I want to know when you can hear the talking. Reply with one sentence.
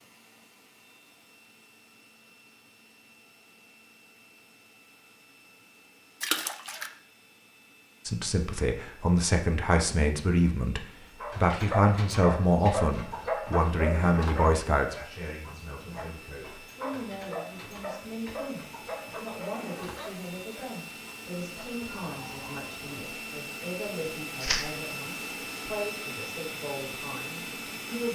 The talking can be heard from 8.1 to 28.1 s.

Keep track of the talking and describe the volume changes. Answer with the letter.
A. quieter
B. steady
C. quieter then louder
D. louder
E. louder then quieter
A.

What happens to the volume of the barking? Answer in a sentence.
The loudness of the barking goes down.